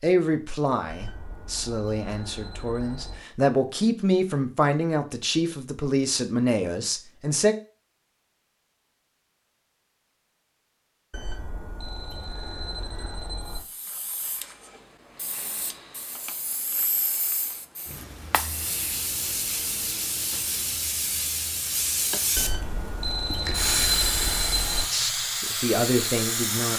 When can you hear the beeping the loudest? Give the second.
24 s.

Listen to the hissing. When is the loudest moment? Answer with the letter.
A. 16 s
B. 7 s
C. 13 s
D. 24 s
D.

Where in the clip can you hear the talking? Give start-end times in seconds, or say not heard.
0.0-7.5, 24.9-26.7.